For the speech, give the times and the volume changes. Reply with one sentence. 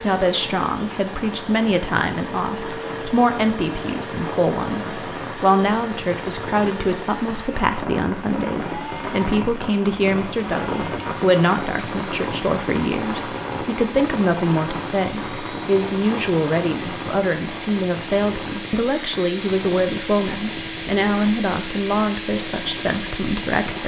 The speech can be heard from 0.0 to 23.8 s, at a steady volume.